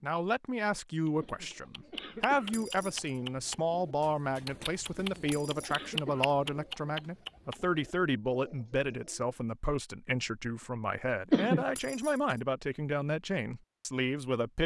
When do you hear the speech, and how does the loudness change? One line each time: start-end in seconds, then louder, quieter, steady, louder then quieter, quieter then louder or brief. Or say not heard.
0.0-14.6 steady.